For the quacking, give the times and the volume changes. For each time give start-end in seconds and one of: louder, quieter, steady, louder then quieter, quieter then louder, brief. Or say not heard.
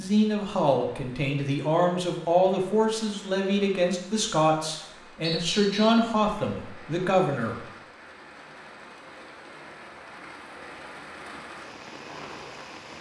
not heard.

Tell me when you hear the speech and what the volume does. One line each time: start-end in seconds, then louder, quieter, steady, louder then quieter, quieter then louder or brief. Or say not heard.
0.0-7.7 steady.